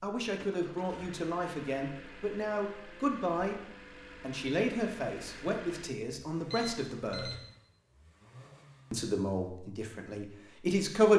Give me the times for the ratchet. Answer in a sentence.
The ratchet can't be heard in this clip.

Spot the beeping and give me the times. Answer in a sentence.
The beeping can be heard from 6.5 to 7.5 s.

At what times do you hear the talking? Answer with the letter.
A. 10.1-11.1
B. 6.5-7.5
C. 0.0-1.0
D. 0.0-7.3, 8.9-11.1
D.